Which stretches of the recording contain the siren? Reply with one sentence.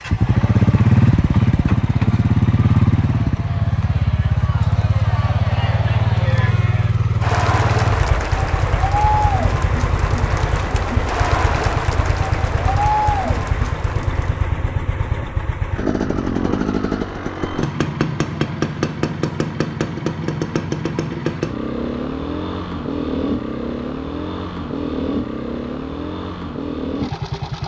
The siren can't be heard in this clip.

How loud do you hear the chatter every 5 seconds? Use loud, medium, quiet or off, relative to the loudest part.
quiet, loud, loud, off, off, off.